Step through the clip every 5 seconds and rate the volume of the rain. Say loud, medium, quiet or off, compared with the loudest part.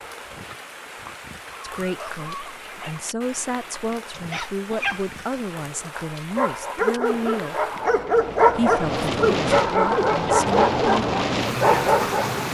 quiet, medium, loud.